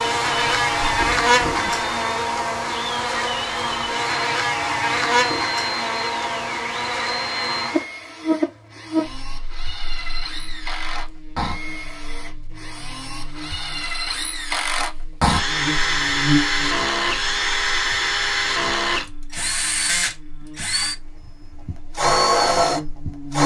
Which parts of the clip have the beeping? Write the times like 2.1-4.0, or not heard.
not heard.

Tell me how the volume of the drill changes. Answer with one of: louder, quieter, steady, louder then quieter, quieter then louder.
louder.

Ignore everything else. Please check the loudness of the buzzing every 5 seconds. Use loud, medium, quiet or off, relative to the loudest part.
loud, loud, quiet, medium, medium.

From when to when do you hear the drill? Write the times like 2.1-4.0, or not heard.
0.1-23.4.